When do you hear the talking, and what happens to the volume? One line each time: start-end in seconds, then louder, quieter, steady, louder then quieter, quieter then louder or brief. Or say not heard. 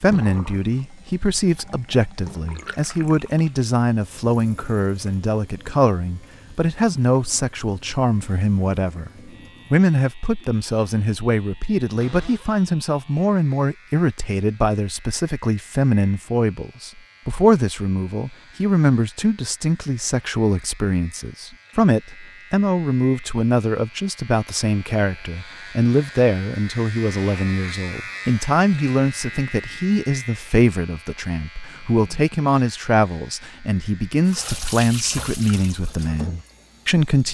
0.0-37.2 steady.